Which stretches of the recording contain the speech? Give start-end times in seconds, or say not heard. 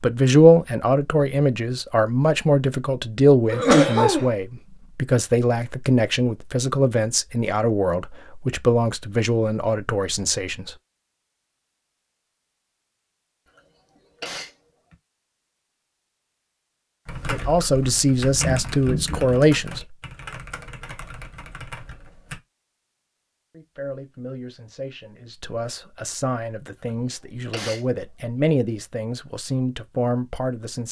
0.0-10.8, 17.3-19.8, 23.5-30.8.